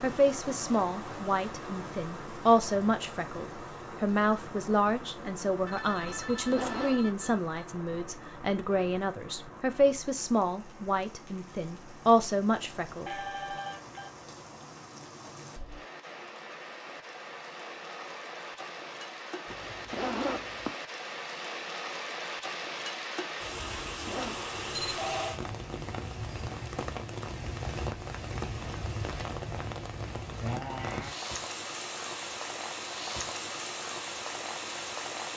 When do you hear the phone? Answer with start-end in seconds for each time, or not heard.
5.7-7.4, 13.1-14.1, 24.9-25.4.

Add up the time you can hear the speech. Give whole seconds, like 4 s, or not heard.
13 s.